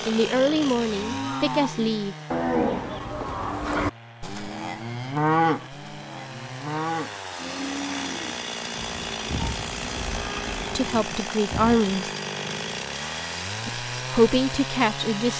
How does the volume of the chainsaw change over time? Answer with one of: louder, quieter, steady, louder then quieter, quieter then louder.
quieter then louder.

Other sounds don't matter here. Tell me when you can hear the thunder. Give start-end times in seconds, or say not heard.
8.8-10.8.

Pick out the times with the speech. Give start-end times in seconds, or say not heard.
0.1-2.1, 10.8-12.1, 13.7-15.3.